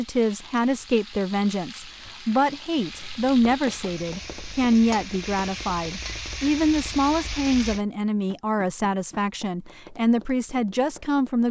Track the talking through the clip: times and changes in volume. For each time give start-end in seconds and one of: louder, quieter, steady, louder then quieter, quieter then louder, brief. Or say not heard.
0.0-11.4 steady.